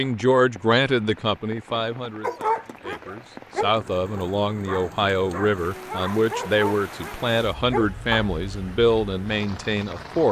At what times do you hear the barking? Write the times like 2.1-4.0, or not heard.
2.2-8.3.